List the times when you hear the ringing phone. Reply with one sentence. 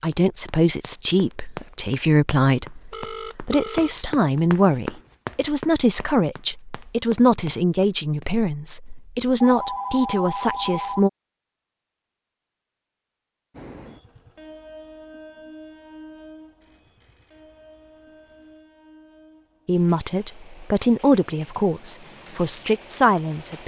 The ringing phone can be heard from 2.9 to 4.0 s, from 9.4 to 11.0 s and from 16.6 to 18.6 s.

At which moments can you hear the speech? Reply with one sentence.
The speech can be heard from 0.0 to 11.1 s and from 19.6 to 23.6 s.